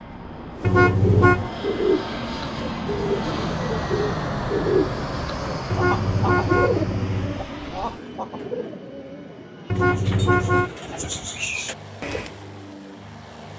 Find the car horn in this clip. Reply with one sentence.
You can hear the car horn from 0.6 to 1.5 s, from 5.7 to 7.4 s and from 9.7 to 10.7 s.